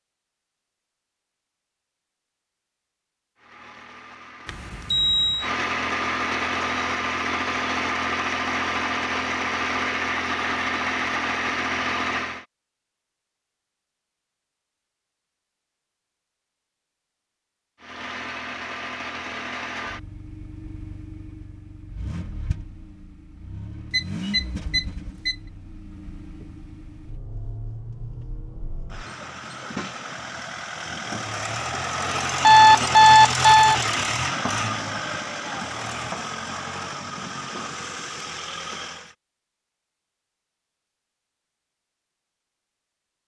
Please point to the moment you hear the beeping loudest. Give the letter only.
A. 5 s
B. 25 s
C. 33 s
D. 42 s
C.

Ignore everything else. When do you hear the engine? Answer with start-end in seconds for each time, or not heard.
3.4-12.4, 17.8-39.1.